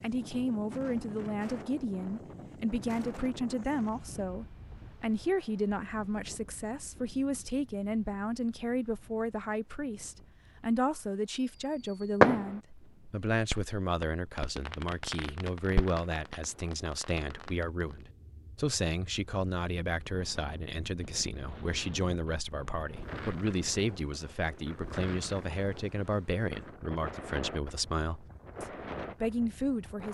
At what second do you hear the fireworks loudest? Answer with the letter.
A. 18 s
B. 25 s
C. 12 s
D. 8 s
C.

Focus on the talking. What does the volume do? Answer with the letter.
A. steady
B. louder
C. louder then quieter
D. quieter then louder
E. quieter
A.